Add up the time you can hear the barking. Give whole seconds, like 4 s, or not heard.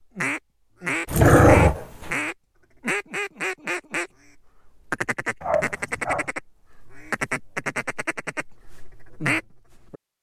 2 s.